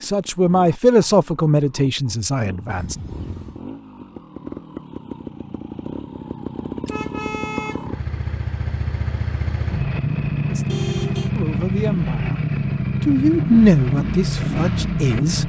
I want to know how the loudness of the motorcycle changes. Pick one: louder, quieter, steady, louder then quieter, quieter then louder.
louder.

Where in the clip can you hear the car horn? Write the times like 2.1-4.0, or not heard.
2.7-3.6, 6.8-7.9, 10.7-11.3.